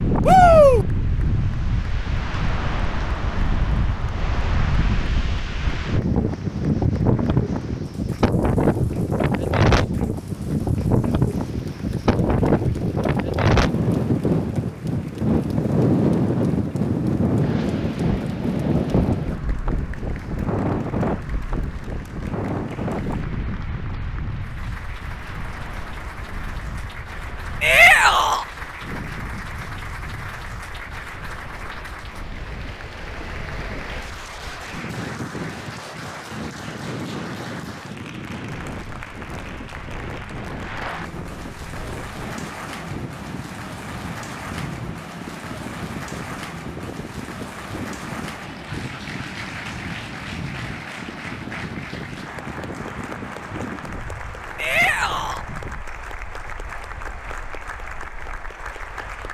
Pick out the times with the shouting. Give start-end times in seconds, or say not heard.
0.2-0.8, 27.6-28.4, 54.5-55.4.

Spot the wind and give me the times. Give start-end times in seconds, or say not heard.
0.0-59.3.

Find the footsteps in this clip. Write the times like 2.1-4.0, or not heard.
not heard.